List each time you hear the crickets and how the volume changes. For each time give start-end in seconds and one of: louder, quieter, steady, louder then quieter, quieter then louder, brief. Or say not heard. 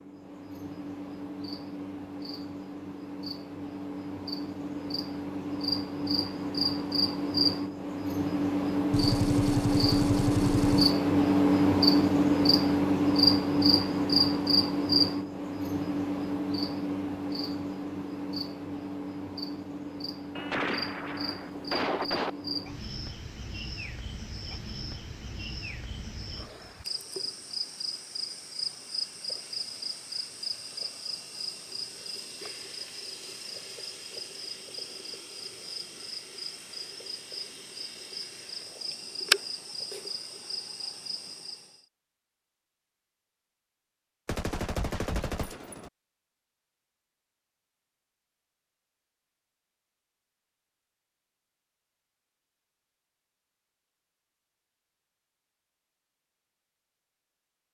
0.0-41.8 louder then quieter.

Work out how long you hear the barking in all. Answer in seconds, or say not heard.
not heard.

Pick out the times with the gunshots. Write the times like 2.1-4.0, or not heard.
8.9-10.9, 20.4-22.3, 44.2-45.9.